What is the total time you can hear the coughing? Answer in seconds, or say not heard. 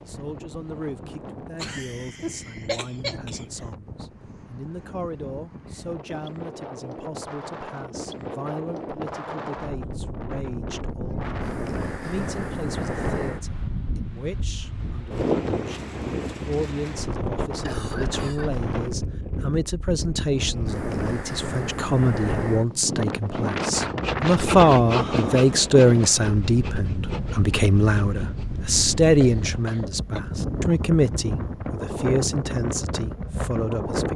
4 s.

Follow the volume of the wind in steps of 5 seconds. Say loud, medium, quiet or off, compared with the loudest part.
quiet, medium, loud, loud, loud, loud, loud.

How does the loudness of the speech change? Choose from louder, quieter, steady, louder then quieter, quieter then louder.
louder.